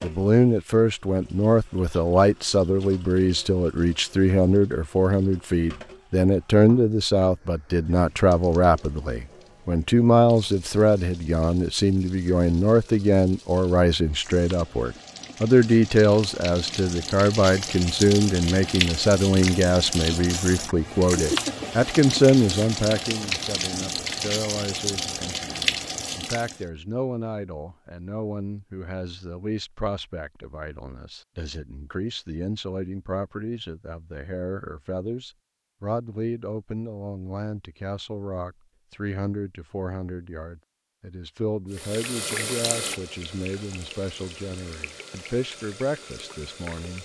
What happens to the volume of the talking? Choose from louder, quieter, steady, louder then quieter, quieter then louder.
quieter.